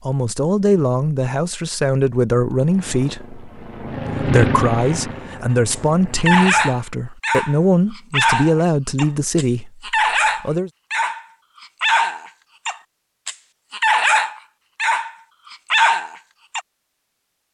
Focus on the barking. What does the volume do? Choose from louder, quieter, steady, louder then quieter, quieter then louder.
steady.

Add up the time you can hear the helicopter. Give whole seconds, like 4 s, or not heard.
4 s.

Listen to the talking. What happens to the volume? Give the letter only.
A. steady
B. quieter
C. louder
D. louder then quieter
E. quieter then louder
A.